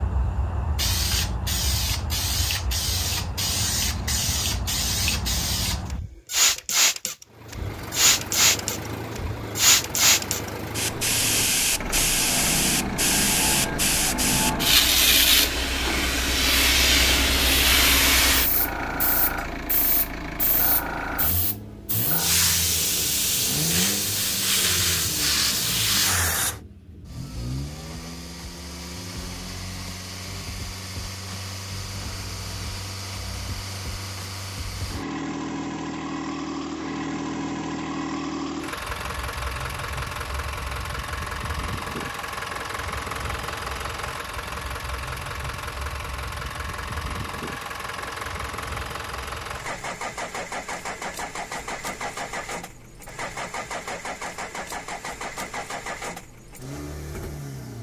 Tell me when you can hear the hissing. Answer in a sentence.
You can hear the hissing from 0.0 to 26.6 s.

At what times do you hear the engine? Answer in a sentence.
You can hear the engine from 7.2 to 57.7 s.